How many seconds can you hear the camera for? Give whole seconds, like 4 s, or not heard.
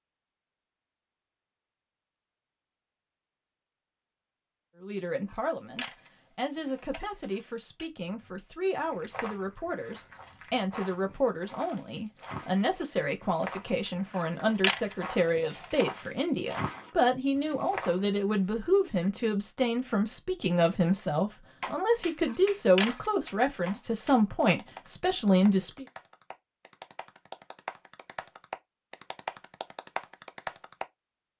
5 s.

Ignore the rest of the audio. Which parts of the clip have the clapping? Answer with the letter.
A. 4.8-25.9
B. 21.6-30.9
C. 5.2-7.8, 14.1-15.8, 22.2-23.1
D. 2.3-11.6
B.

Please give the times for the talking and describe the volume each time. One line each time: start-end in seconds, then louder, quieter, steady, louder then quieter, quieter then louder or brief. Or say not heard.
4.8-25.9 louder.